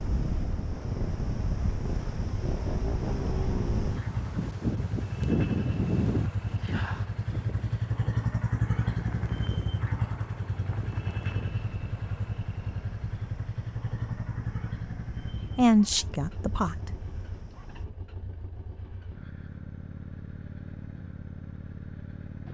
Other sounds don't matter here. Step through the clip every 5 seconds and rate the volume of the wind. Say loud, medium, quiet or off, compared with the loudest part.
loud, loud, quiet, quiet, off.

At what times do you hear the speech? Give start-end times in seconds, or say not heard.
15.6-16.9.